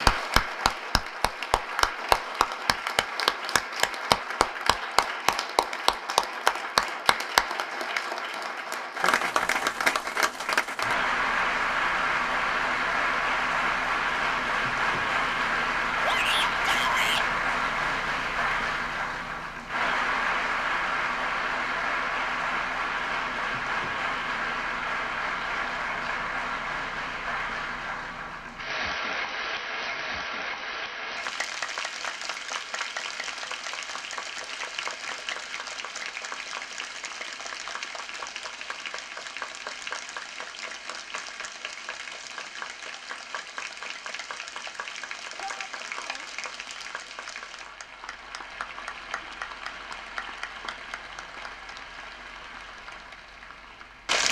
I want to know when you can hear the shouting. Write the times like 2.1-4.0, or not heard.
16.0-17.2, 45.4-46.2.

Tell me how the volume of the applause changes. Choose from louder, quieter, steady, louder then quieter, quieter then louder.
quieter.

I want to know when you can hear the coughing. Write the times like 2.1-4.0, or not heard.
not heard.